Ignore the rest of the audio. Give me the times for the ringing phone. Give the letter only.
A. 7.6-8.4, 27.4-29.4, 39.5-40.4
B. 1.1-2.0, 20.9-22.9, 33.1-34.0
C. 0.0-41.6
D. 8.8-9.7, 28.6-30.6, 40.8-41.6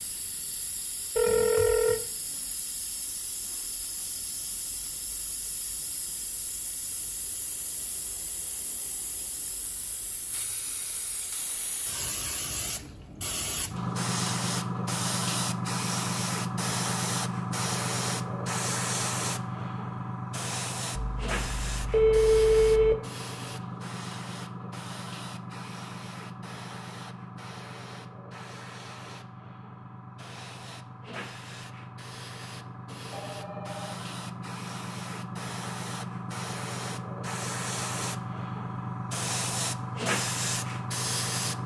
B.